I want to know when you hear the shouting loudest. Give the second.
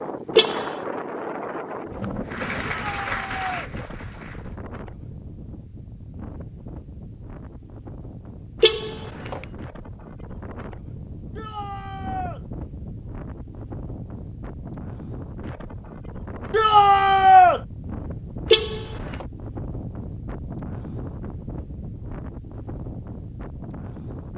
17 s.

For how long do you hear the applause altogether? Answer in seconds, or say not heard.
2 s.